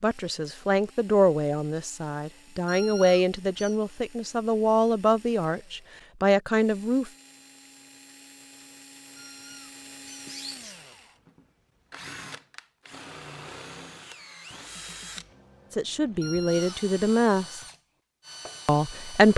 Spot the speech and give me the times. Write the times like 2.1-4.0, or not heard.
0.0-7.1, 15.7-17.6, 18.6-19.3.